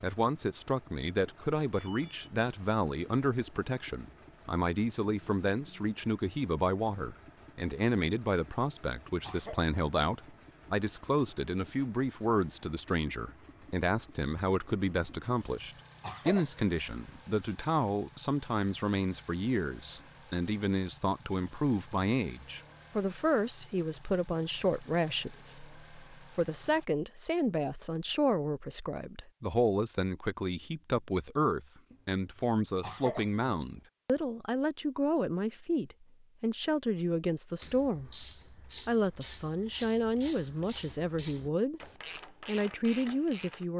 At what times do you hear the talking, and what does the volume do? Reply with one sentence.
The talking can be heard from 0.0 to 38.2 s, at a steady volume; briefly from 38.9 to 41.8 s; and briefly from 42.5 to 43.7 s.